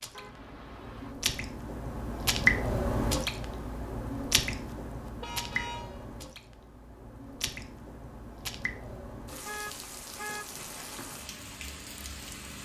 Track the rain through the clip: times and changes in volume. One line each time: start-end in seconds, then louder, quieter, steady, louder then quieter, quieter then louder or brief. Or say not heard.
0.0-12.6 quieter.